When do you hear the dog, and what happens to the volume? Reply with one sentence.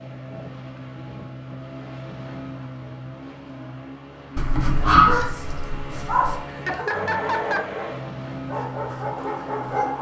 You can hear the dog from 4.3 to 9.9 s, getting quieter then louder.